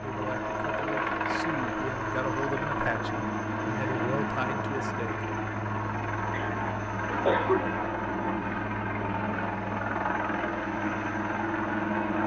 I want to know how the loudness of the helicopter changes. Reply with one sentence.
The volume of the helicopter stays about the same.